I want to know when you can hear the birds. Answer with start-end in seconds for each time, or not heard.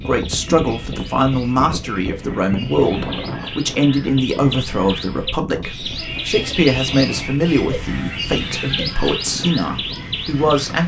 0.0-10.8.